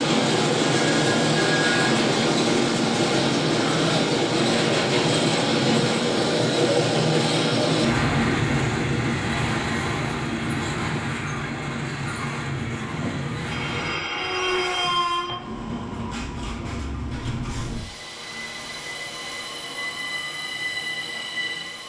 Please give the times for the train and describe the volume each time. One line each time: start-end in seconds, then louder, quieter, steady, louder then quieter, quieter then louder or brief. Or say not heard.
0.0-21.8 quieter.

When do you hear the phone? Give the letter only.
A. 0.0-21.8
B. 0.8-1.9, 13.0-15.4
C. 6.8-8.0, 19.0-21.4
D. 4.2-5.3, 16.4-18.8
B.